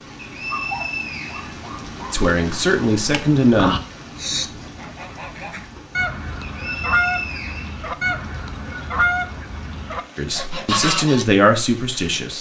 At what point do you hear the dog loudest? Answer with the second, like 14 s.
1 s.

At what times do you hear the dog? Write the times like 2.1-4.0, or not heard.
0.5-2.1.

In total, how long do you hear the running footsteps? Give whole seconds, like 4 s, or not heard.
not heard.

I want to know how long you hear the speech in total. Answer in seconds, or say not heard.
4 s.